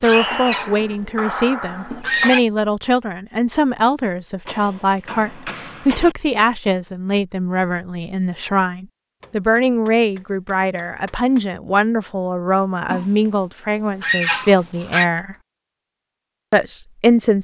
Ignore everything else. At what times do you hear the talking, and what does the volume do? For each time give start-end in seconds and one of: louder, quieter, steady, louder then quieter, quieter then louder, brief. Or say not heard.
0.0-15.3 steady
16.5-17.3 brief.